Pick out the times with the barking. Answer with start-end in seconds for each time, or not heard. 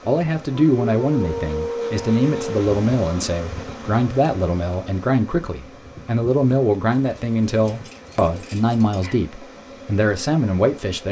0.6-2.6, 6.9-9.2.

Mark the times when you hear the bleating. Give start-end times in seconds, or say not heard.
not heard.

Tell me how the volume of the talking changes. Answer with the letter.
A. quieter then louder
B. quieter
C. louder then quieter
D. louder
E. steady
E.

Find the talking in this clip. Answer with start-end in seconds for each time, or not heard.
0.1-11.0.